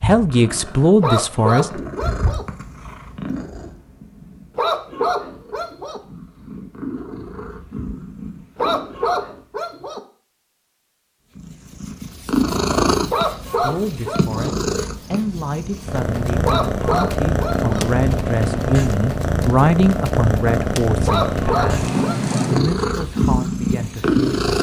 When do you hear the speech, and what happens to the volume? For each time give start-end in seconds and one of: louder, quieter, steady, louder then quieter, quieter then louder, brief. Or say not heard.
0.0-1.8 brief
13.6-24.4 louder then quieter.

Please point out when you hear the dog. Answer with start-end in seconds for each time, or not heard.
1.0-2.5, 4.5-6.0, 8.6-10.0, 13.1-14.5, 16.4-17.9, 21.1-22.5.